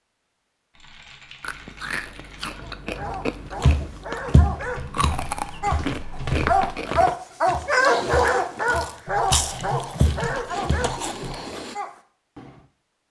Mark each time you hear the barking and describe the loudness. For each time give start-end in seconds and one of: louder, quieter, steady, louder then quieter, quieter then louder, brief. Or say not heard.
2.5-12.7 louder then quieter.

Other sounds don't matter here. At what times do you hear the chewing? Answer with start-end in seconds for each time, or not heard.
1.4-11.8.